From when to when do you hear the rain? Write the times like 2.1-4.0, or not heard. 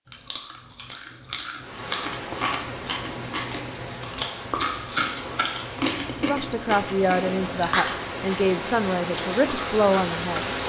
1.6-10.6.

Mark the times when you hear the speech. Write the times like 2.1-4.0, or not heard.
6.2-10.4.